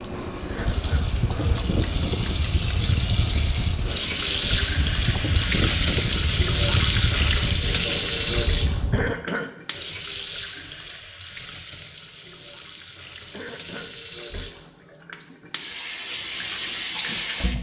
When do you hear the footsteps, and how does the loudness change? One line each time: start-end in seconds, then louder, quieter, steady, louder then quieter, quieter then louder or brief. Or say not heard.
not heard.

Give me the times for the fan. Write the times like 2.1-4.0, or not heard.
0.0-9.2.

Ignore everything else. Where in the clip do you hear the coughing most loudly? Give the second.
9 s.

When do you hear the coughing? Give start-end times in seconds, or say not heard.
0.5-1.1, 8.9-9.5, 13.3-14.5.